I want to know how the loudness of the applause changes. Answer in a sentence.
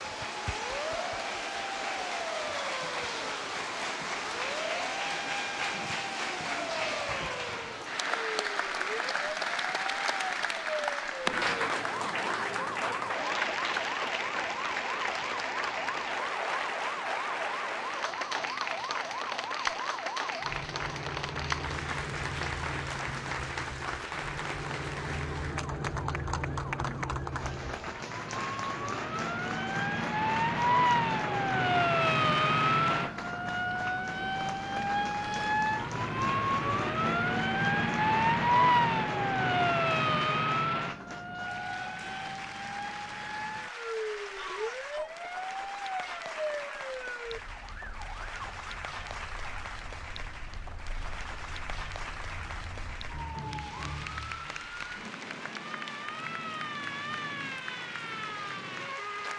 The loudness of the applause goes down.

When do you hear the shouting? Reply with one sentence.
The shouting can be heard from 44.4 to 45.1 s.